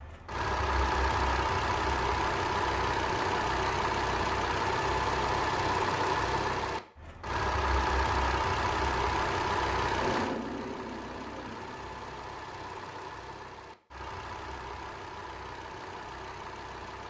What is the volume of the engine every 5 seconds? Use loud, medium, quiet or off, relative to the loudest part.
loud, loud, medium, quiet.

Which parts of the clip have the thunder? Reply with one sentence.
The thunder can be heard from 9.8 to 12.2 s.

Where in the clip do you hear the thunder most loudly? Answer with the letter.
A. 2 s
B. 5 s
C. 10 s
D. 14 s
C.